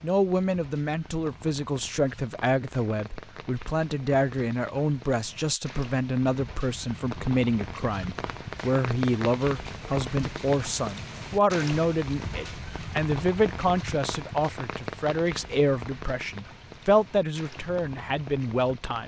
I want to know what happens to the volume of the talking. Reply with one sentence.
The volume of the talking stays about the same.